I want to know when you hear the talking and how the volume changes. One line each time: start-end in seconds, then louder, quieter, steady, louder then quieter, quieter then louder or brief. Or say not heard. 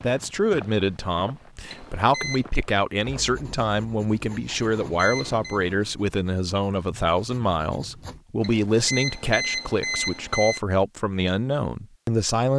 0.0-12.5 steady.